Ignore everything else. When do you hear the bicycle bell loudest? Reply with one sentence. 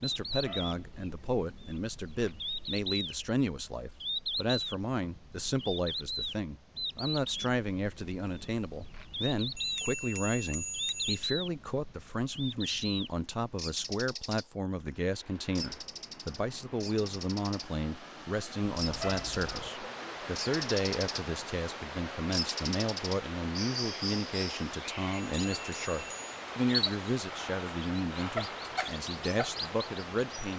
The loudest moment of the bicycle bell is at 11 seconds.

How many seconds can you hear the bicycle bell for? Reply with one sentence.
The bicycle bell can be heard for 3 seconds in total.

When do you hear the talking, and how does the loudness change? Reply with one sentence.
The talking can be heard from 0.0 to 30.5 s, at a steady volume.